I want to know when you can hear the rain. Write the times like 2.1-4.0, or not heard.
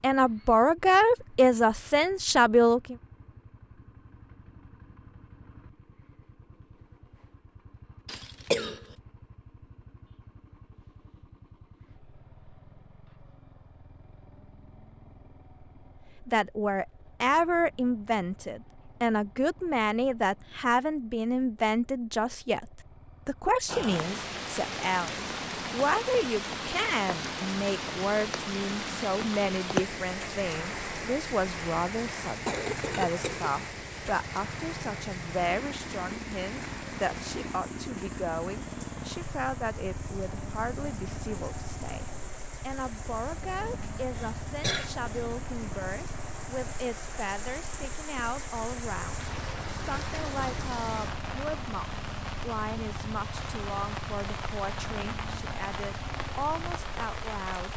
23.6-57.7.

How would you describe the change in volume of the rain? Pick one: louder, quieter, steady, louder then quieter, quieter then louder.
quieter then louder.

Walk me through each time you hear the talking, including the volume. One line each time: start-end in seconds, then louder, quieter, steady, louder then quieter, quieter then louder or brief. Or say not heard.
0.0-3.0 brief
16.2-57.7 quieter.